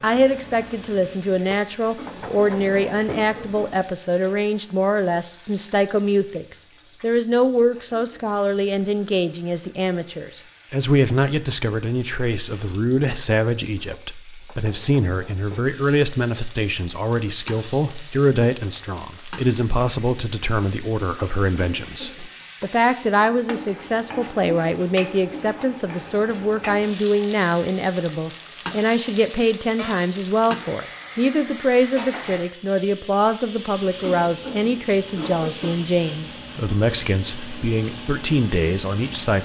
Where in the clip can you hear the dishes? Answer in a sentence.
You can't hear the dishes here.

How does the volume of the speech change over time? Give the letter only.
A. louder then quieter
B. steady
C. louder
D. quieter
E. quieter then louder
B.